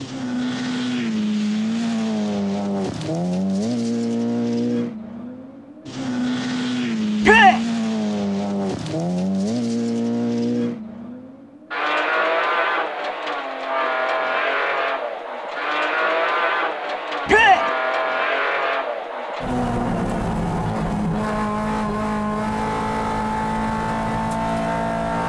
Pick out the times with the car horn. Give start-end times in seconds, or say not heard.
not heard.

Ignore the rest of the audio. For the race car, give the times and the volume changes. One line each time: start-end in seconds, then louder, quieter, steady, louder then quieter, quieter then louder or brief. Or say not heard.
0.0-25.2 steady.